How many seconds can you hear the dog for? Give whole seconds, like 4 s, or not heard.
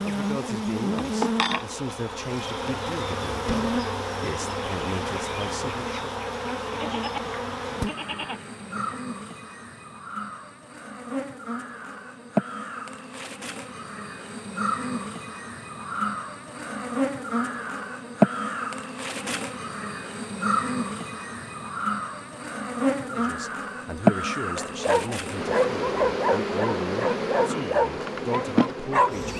5 s.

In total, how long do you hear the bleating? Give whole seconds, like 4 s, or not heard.
2 s.